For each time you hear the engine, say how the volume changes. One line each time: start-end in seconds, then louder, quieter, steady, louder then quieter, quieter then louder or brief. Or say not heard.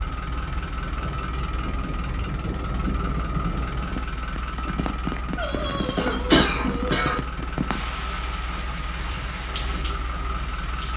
0.0-10.9 steady.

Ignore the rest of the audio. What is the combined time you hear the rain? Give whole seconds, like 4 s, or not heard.
11 s.